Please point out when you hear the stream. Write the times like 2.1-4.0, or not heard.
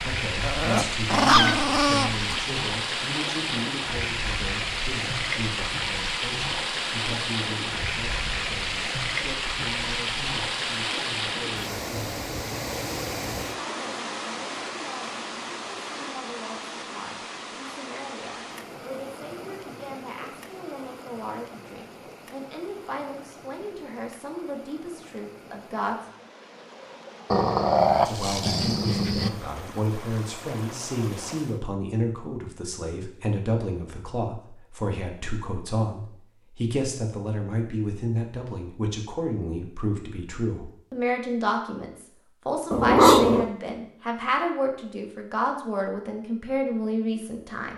0.0-31.6.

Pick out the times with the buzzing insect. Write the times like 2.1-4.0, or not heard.
not heard.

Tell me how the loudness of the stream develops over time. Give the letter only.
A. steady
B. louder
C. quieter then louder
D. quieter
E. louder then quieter
D.